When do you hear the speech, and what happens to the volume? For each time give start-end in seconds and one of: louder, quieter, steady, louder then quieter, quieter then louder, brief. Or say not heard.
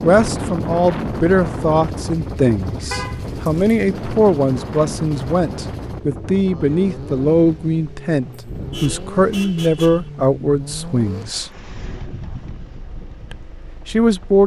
0.0-11.5 steady
13.3-14.4 brief.